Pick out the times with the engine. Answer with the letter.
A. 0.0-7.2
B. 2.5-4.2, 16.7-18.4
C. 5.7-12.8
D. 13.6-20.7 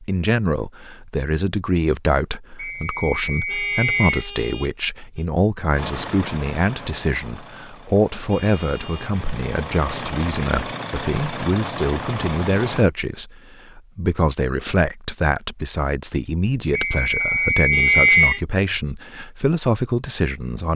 C.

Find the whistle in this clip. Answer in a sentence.
The whistle can be heard from 2.5 to 4.2 s and from 16.7 to 18.4 s.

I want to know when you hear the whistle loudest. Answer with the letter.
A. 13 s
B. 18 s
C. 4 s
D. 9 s
B.